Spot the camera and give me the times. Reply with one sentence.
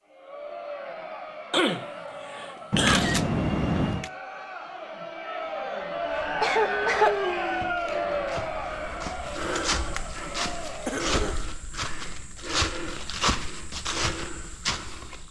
You can hear the camera from 2.7 to 4.1 s and from 7.8 to 8.3 s.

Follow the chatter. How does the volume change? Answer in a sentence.
The loudness of the chatter goes up, then down.